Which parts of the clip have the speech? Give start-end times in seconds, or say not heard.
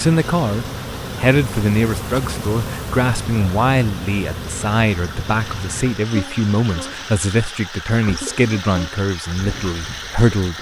0.0-10.5.